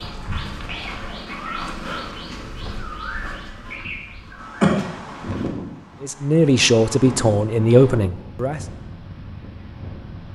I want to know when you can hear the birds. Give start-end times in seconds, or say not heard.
0.0-5.5.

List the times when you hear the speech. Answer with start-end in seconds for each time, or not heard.
6.0-8.6.